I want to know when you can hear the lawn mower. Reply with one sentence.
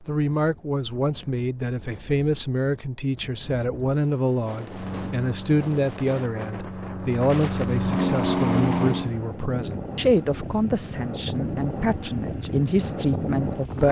The lawn mower can be heard from 4.7 to 9.2 s.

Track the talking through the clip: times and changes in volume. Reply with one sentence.
The talking can be heard from 0.1 to 13.8 s, at a steady volume.